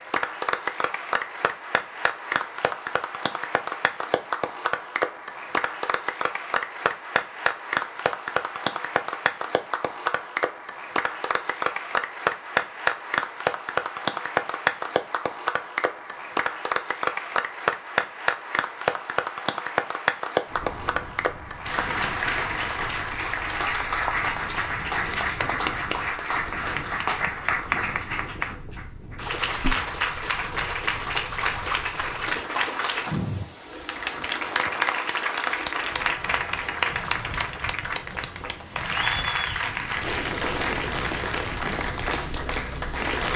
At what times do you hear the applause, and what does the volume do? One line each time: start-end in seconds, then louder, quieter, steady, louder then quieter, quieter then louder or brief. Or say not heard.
0.0-43.3 steady.